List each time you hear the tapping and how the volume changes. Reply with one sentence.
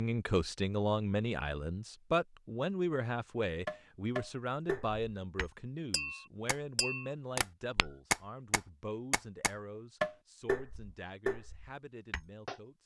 The tapping can be heard from 3.6 to 12.6 s, getting louder then quieter.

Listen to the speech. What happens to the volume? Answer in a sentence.
The volume of the speech goes down.